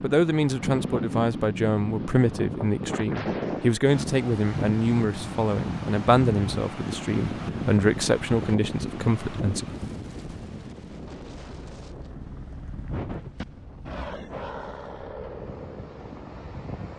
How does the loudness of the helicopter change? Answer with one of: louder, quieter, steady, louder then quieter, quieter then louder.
louder then quieter.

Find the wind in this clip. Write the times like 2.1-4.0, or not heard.
0.0-16.9.